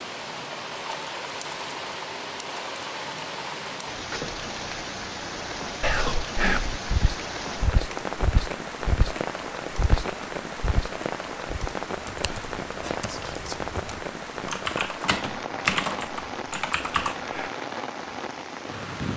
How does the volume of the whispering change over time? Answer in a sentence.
The loudness of the whispering goes down.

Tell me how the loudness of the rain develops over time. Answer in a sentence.
The loudness of the rain stays about the same.